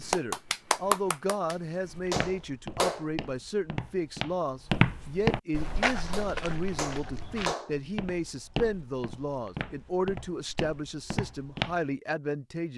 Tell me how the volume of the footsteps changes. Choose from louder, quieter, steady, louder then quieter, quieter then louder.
louder then quieter.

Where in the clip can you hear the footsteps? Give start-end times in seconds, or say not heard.
1.9-11.8.